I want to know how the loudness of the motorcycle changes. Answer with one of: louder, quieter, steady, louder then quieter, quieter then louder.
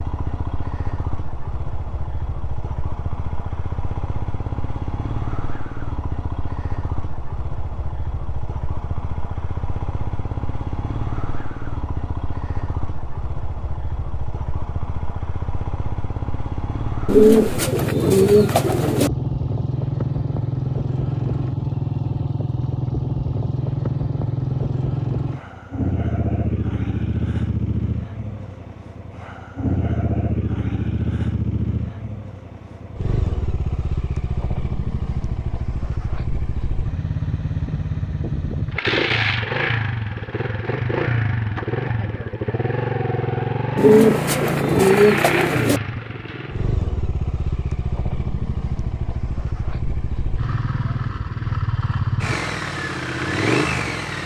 louder.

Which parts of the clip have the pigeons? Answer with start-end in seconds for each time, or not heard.
17.1-19.1, 43.8-45.8.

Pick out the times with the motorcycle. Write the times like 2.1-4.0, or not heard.
0.0-54.2.